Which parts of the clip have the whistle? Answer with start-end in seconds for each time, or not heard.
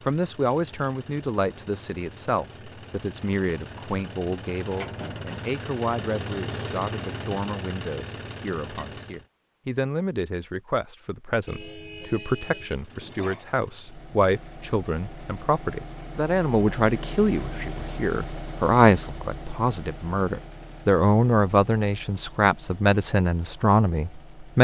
not heard.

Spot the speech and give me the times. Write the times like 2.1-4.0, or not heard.
0.1-24.5.